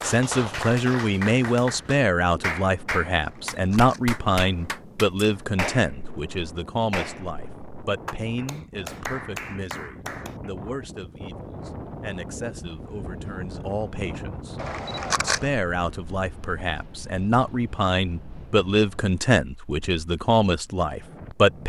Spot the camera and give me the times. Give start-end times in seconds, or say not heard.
3.2-4.7, 14.6-15.6.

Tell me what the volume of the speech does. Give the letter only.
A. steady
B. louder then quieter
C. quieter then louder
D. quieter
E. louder
C.